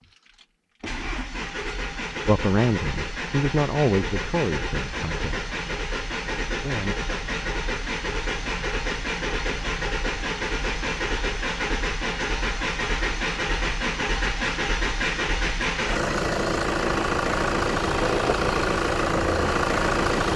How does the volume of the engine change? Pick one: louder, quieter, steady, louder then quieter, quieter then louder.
louder.